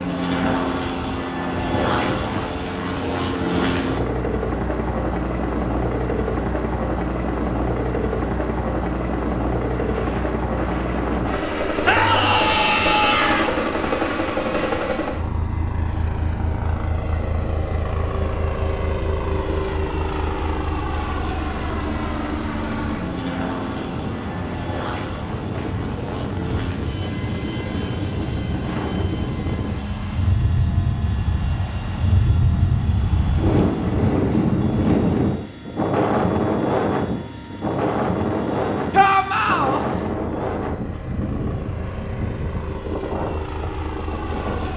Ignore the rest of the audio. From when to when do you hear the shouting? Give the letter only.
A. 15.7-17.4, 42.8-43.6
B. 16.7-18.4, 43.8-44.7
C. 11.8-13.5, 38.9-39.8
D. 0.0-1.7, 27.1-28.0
C.